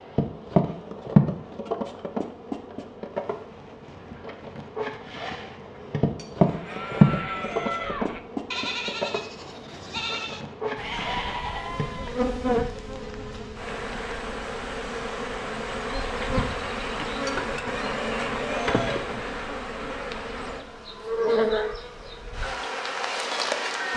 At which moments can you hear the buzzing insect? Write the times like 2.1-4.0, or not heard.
0.0-23.9.